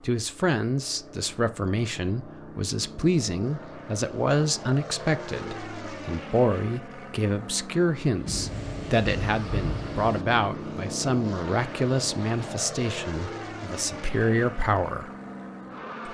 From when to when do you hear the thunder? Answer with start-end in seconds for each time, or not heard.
8.2-10.2.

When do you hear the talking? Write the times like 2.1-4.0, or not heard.
0.0-15.1.